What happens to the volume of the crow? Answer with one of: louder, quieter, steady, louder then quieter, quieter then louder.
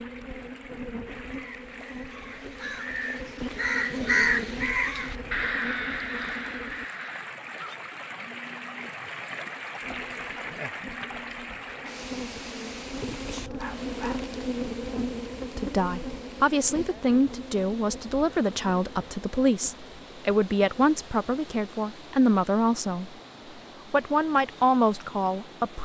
louder then quieter.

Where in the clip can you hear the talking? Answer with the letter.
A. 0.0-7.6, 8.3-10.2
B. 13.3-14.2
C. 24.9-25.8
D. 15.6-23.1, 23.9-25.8
D.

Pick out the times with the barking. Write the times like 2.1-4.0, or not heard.
13.3-14.2.